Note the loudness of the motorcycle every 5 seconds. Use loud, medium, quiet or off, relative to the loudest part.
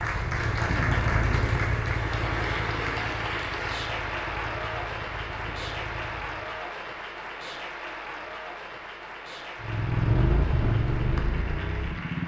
medium, medium, loud.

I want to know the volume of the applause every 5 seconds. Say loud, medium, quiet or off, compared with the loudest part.
loud, medium, medium.